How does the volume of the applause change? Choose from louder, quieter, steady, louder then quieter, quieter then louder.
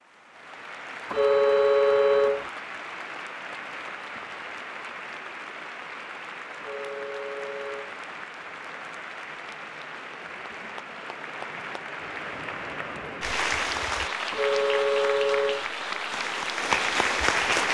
louder.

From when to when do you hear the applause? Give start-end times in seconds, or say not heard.
0.0-17.6.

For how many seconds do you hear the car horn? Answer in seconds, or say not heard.
4 s.